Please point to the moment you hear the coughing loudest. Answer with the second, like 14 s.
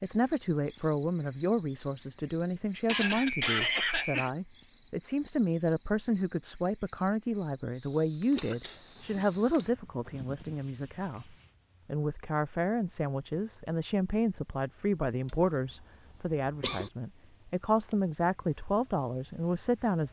4 s.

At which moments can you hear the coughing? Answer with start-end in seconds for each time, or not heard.
2.9-4.3, 8.3-9.7, 15.2-16.9.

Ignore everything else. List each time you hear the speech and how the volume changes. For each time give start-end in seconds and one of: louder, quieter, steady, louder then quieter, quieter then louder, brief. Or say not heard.
0.0-20.0 steady.